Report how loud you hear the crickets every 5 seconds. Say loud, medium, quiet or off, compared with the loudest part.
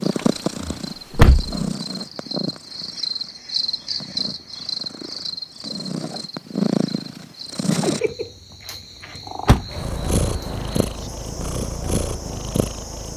loud, medium, medium.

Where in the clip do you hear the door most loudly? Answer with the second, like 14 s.
1 s.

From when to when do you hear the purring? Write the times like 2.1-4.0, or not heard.
0.0-13.1.